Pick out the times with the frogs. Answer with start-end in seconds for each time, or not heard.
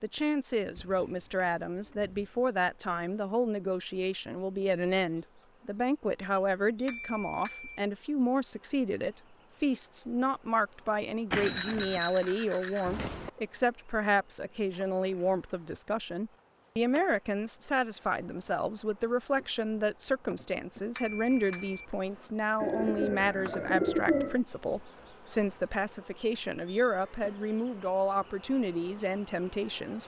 not heard.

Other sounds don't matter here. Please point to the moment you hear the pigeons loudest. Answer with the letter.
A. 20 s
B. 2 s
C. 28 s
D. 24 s
D.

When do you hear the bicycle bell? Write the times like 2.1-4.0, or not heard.
6.8-7.8, 11.3-13.3, 20.9-21.9.